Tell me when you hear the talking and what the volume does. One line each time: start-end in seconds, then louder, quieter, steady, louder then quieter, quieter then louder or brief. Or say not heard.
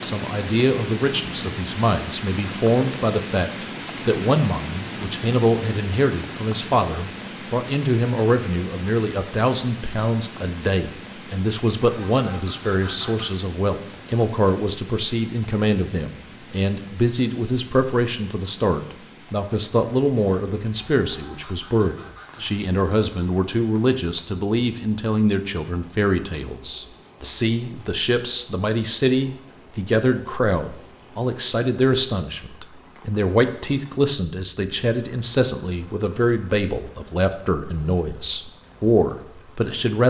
0.0-40.0 steady.